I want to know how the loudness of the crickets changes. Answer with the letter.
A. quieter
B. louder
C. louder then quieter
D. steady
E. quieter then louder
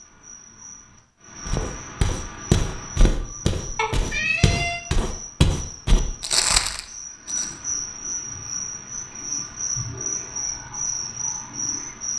B.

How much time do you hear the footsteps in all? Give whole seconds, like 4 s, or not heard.
6 s.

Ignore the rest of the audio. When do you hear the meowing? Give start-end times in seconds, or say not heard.
3.8-4.8.